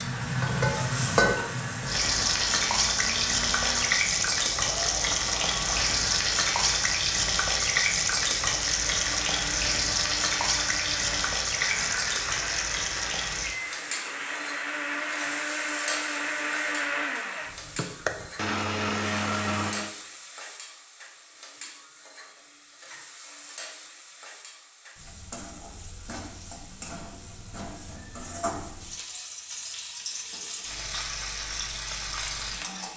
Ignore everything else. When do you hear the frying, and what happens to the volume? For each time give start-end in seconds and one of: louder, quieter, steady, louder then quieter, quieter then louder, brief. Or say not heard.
0.0-32.9 quieter then louder.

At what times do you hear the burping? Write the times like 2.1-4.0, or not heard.
not heard.